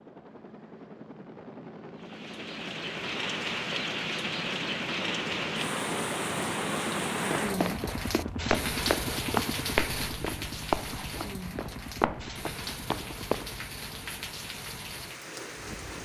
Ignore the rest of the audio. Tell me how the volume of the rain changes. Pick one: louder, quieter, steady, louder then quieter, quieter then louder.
quieter.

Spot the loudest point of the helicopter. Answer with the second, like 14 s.
7 s.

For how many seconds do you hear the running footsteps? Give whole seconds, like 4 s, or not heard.
6 s.